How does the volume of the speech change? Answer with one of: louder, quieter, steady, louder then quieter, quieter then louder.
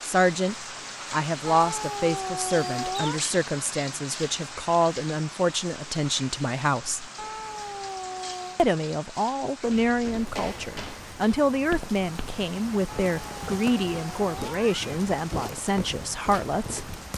steady.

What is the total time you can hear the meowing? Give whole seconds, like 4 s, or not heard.
5 s.